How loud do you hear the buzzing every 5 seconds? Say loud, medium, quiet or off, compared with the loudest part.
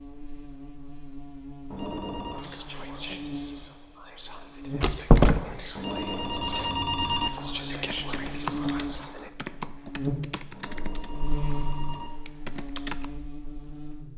medium, loud, loud.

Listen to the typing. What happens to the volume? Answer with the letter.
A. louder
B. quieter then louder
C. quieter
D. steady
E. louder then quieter
B.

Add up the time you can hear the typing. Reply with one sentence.
The typing can be heard for 5 seconds in total.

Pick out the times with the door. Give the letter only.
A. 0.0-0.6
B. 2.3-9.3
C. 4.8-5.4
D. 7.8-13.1
C.